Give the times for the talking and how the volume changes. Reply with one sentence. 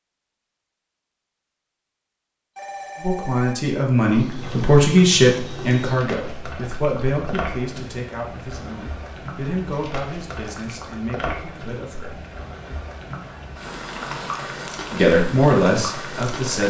The talking can be heard from 3.0 to 12.2 s, getting quieter; and briefly from 14.9 to 16.6 s.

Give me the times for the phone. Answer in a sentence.
The phone can be heard from 2.5 to 3.5 s.